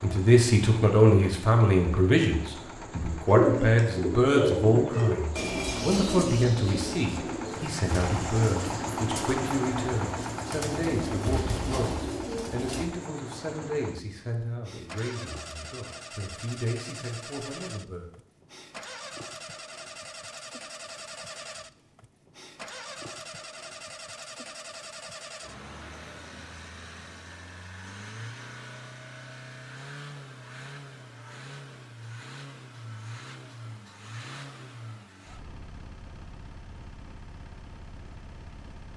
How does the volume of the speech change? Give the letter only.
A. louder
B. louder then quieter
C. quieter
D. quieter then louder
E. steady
C.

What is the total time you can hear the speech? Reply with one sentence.
You can hear the speech for 18 seconds altogether.